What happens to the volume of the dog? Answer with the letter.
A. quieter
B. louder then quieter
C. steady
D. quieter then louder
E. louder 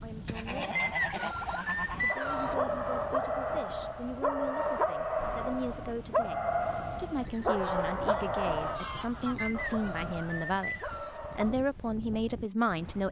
A.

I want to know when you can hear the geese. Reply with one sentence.
You can hear the geese from 0.2 to 2.1 s and from 7.2 to 9.6 s.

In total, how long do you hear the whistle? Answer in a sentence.
You can hear the whistle for 4 seconds altogether.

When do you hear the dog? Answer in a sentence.
You can hear the dog from 2.1 to 11.6 s.